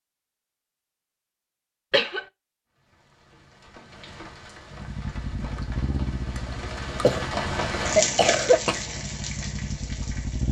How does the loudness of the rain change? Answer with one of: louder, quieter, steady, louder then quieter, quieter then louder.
louder then quieter.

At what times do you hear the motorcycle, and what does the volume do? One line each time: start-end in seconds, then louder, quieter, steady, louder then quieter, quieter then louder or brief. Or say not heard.
4.7-10.4 quieter then louder.